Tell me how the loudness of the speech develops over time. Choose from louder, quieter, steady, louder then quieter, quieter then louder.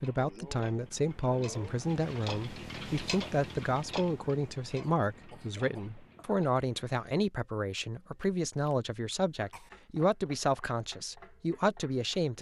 steady.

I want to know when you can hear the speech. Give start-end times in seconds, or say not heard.
0.0-12.3.